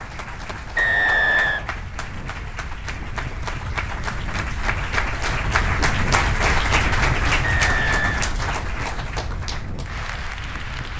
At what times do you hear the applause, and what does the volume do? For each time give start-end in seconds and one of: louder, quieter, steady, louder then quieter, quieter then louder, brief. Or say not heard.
0.0-10.9 louder then quieter.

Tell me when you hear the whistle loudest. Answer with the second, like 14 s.
1 s.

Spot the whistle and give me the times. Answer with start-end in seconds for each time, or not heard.
0.8-1.7, 7.4-8.2.